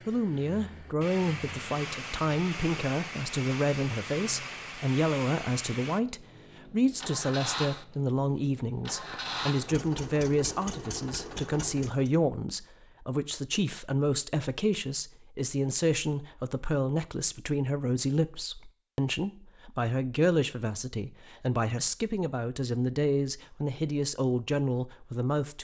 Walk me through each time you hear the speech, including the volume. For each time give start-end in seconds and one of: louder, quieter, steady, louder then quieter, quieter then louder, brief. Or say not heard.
0.1-25.5 steady.